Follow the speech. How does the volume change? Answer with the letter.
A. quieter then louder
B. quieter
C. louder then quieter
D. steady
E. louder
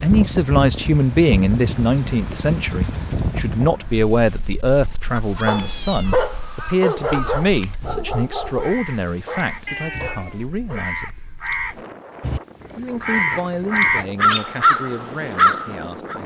B.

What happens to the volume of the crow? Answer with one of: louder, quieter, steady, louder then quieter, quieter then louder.
louder.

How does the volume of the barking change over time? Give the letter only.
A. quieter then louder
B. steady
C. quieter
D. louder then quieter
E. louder
C.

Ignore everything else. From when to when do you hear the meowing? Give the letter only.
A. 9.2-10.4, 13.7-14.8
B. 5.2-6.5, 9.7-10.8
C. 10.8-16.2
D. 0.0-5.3
B.